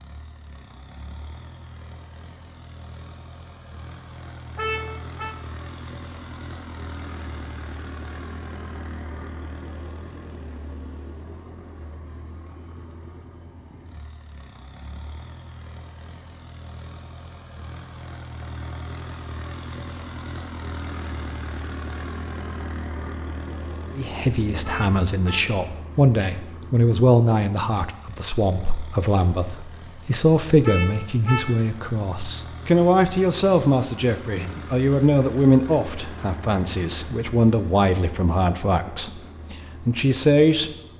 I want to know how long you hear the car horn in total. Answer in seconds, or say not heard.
3 s.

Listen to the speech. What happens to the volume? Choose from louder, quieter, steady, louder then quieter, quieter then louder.
steady.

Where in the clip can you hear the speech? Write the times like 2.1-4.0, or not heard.
23.9-40.7.